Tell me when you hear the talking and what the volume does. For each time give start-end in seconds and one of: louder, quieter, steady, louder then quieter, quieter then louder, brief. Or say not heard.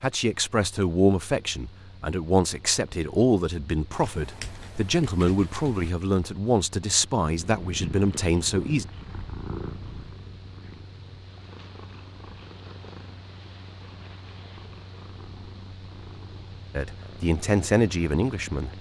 0.0-8.8 steady
16.8-18.7 brief.